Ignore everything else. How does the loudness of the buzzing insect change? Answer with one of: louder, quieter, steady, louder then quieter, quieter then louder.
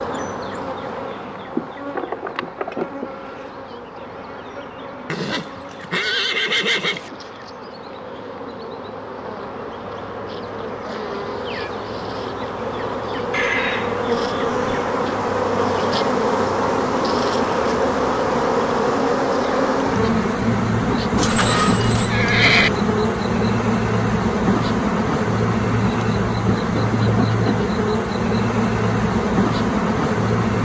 louder.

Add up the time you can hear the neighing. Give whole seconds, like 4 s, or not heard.
5 s.